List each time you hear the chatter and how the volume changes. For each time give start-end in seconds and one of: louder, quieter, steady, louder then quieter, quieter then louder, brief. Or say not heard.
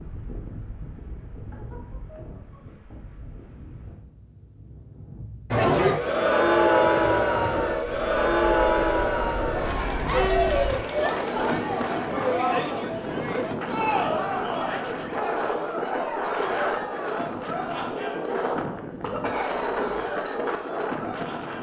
5.5-21.5 quieter.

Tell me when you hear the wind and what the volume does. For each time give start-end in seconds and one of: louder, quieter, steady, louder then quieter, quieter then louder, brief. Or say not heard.
0.0-21.5 louder.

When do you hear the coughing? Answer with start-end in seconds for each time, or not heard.
19.0-20.1.